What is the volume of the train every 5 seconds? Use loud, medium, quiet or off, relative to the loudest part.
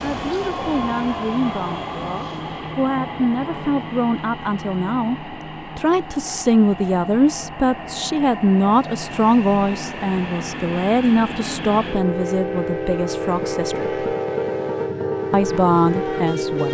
medium, medium, loud, loud.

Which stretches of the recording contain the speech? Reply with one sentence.
You can hear the speech from 0.0 to 13.9 s and from 15.3 to 16.6 s.